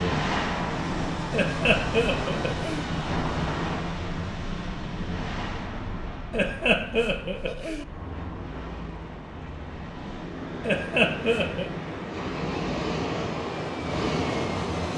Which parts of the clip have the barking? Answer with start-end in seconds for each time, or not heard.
not heard.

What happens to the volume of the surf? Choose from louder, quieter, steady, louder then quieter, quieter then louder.
quieter then louder.